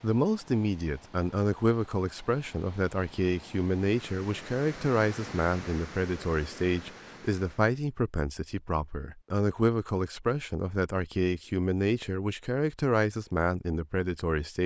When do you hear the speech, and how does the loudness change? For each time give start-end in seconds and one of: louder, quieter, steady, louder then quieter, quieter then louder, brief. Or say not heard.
0.0-14.6 steady.